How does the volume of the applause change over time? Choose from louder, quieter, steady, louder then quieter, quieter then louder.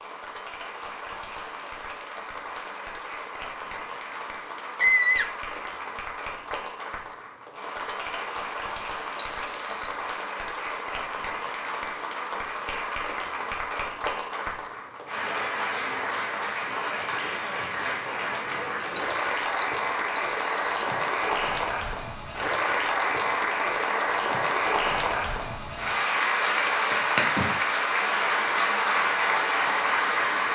louder.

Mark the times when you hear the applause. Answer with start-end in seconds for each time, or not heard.
0.0-30.5.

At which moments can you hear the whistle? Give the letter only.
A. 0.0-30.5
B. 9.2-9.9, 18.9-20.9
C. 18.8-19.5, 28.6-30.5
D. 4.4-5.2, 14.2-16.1
B.